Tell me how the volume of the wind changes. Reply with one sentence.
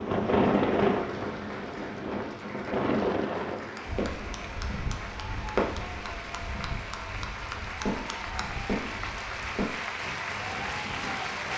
The volume of the wind goes down.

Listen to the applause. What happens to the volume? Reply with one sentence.
The loudness of the applause goes up.